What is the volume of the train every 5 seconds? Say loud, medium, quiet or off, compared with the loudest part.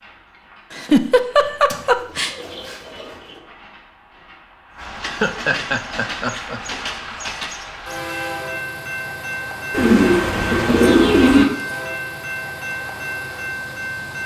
quiet, loud, loud.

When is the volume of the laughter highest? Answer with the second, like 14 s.
1 s.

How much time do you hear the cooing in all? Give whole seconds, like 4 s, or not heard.
4 s.